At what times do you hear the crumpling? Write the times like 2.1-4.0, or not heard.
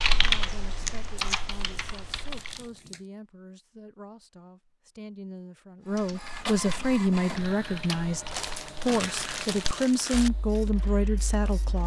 1.1-3.0, 8.3-10.3.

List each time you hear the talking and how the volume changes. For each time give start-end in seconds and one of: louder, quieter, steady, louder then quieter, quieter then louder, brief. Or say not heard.
0.1-11.8 louder.